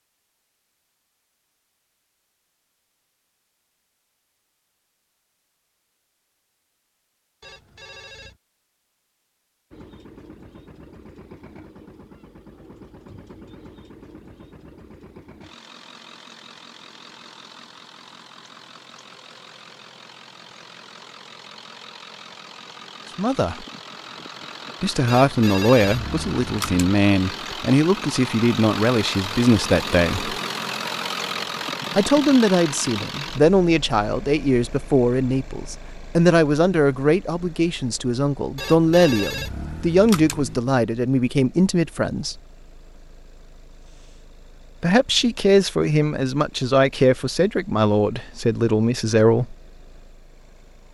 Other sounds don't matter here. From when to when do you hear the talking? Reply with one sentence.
The talking can be heard from 23.1 to 23.6 s, from 24.8 to 30.4 s, from 31.9 to 42.4 s and from 44.8 to 49.5 s.